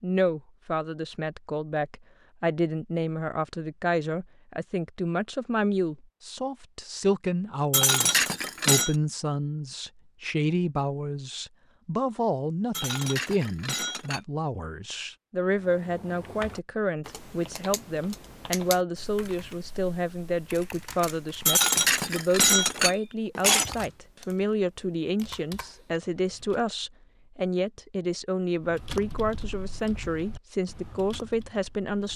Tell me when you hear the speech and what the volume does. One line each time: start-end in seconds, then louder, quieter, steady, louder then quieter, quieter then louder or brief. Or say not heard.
0.0-32.1 steady.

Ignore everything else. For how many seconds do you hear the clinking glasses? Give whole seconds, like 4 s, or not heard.
5 s.